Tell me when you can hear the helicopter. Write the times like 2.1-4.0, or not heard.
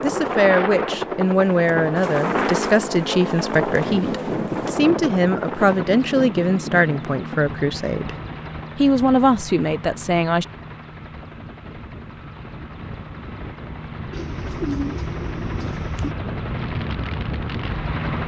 0.0-18.2.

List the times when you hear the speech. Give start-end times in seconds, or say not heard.
0.0-8.2, 8.8-10.4.